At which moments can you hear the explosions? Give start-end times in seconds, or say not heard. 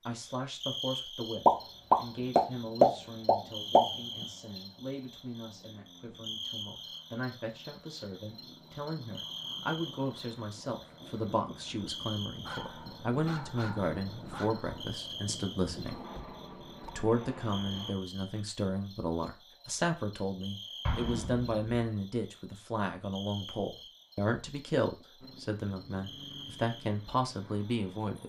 1.4-3.8, 20.9-21.6.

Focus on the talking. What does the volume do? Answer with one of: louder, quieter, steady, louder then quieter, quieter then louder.
louder.